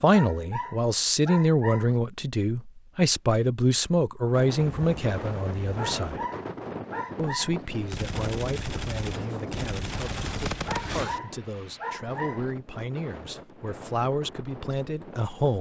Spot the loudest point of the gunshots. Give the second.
11 s.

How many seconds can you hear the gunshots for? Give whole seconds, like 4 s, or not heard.
3 s.